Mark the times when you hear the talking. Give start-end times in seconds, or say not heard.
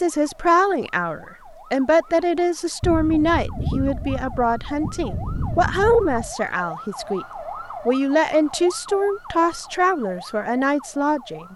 0.0-7.2, 7.8-11.5.